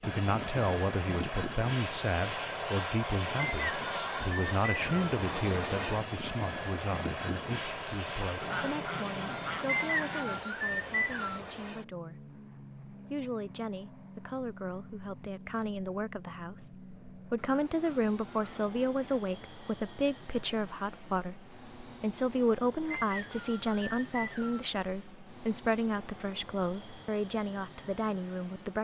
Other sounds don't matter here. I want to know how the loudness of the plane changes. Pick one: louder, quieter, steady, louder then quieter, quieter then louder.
quieter.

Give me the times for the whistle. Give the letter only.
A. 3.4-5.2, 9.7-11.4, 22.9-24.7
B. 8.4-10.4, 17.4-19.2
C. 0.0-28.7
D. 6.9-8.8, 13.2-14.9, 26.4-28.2
A.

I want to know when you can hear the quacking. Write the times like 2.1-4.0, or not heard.
8.4-10.4, 17.4-19.2.